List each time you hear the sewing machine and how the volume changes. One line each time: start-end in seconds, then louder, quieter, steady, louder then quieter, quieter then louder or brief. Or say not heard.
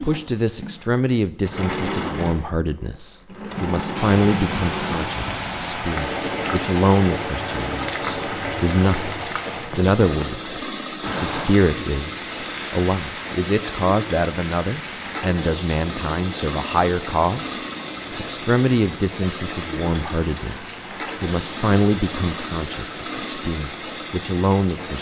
0.0-24.9 steady.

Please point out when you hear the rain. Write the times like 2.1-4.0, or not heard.
4.0-24.9.